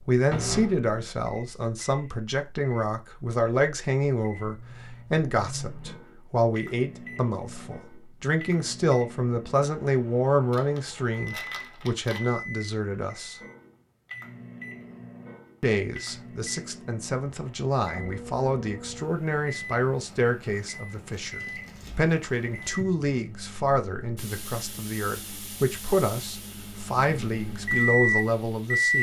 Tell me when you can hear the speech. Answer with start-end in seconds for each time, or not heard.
0.1-13.3, 15.6-28.9.